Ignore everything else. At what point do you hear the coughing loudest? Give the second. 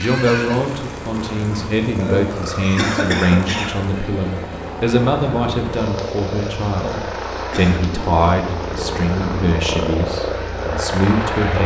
3 s.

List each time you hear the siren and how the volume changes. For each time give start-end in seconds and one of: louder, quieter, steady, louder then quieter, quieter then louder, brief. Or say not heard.
not heard.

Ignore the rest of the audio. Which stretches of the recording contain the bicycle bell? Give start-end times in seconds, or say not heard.
not heard.